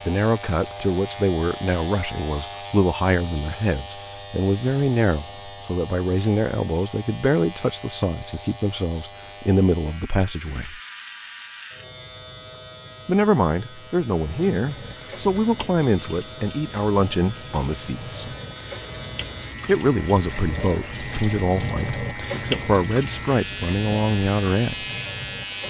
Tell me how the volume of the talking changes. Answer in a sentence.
The loudness of the talking stays about the same.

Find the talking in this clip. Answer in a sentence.
You can hear the talking from 0.1 to 10.8 s, from 13.1 to 18.3 s and from 19.6 to 24.9 s.